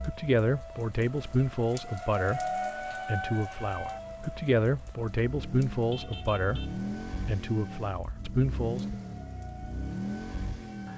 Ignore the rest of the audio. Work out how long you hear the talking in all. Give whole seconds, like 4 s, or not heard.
9 s.